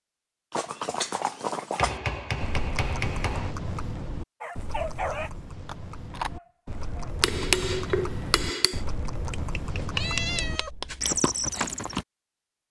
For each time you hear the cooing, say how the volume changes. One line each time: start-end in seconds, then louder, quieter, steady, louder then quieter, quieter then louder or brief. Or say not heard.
not heard.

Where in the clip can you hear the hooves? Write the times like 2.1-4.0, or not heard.
0.5-12.1.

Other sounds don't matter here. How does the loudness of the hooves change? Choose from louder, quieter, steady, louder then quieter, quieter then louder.
quieter then louder.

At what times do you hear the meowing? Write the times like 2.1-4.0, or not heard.
9.3-11.2.